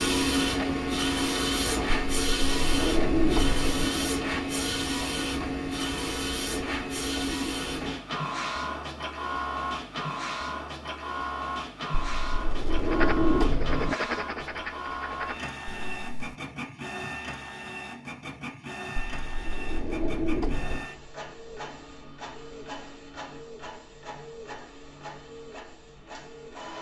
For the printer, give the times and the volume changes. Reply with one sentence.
You can hear the printer from 0.0 to 26.7 s, getting quieter.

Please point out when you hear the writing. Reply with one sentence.
You can hear the writing from 12.9 to 16.4 s.